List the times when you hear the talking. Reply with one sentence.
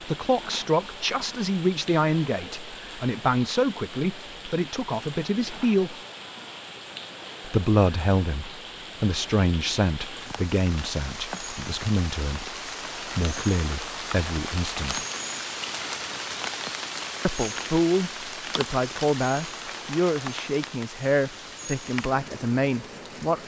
You can hear the talking from 0.1 to 6.0 s, from 7.5 to 12.6 s, from 13.2 to 15.0 s and from 17.2 to 23.4 s.